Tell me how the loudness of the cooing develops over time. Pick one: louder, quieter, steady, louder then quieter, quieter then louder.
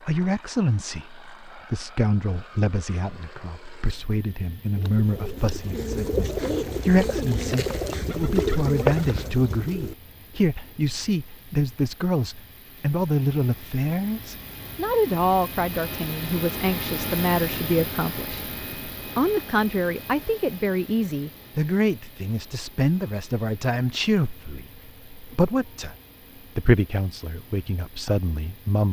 louder.